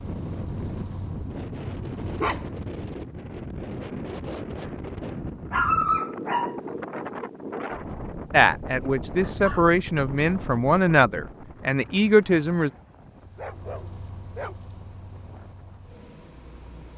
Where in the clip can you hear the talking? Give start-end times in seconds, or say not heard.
8.3-12.7.